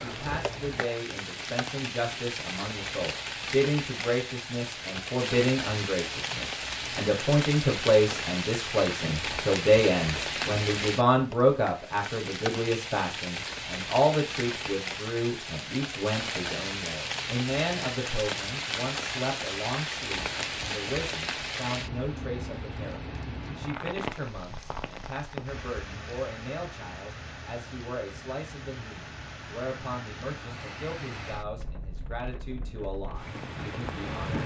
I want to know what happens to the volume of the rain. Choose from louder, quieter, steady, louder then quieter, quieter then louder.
quieter.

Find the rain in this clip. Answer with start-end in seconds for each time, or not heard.
0.0-34.4.